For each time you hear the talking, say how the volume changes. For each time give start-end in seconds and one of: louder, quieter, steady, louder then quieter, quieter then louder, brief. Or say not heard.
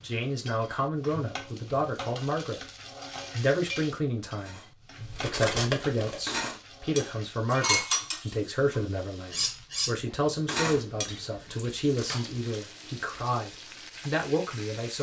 0.0-2.6 brief
3.3-14.9 steady.